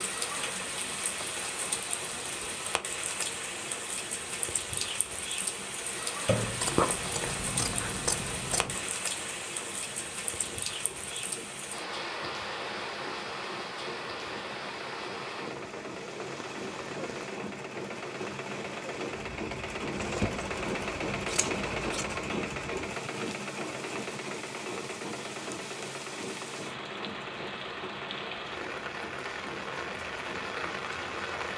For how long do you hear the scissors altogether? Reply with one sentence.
The scissors can be heard for 5 seconds in total.